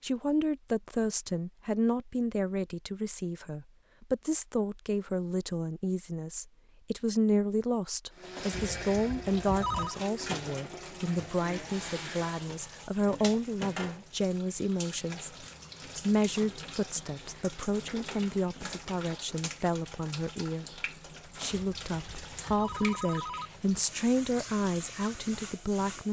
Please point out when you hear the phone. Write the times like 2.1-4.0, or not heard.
8.5-10.0, 21.5-23.5.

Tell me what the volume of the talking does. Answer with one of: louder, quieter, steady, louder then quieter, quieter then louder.
steady.